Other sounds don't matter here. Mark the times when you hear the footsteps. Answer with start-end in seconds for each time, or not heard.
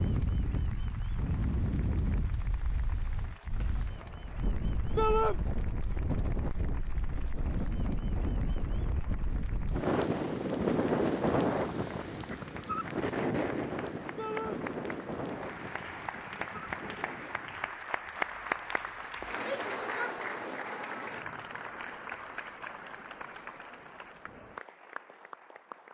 not heard.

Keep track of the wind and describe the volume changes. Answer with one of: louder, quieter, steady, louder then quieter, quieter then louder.
louder then quieter.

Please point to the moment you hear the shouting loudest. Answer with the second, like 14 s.
5 s.